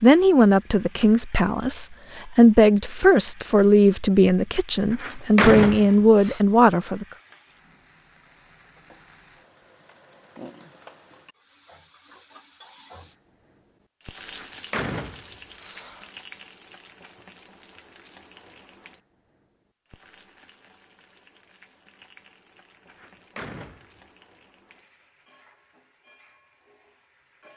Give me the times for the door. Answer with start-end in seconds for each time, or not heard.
4.9-6.4, 14.2-16.1, 22.9-24.0.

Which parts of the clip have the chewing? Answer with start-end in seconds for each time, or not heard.
not heard.